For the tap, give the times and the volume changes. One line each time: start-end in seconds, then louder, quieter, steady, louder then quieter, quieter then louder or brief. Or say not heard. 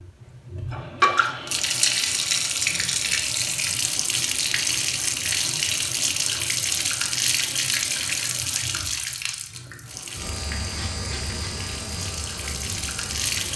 0.0-13.5 quieter.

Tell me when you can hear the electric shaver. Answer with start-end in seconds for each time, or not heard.
10.2-13.5.